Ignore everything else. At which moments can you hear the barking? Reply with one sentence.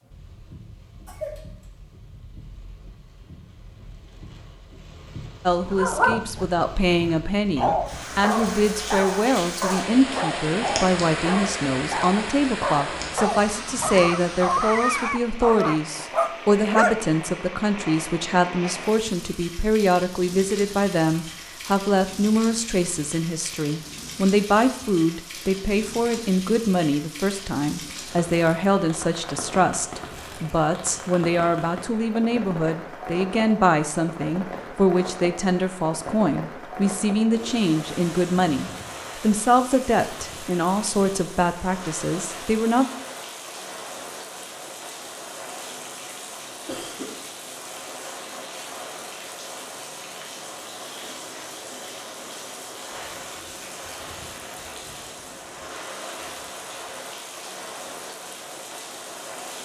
The barking can be heard from 5.7 to 17.0 s.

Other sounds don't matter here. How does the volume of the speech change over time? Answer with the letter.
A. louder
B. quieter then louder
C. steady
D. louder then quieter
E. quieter
C.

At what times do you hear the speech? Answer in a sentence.
You can hear the speech from 5.5 to 42.9 s.